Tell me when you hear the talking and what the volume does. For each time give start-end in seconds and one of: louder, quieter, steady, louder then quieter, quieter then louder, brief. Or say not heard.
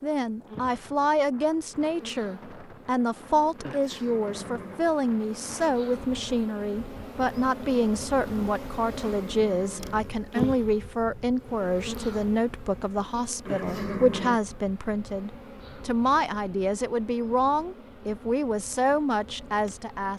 0.0-20.1 steady.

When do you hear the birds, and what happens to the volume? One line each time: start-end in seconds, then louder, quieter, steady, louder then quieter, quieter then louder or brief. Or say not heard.
not heard.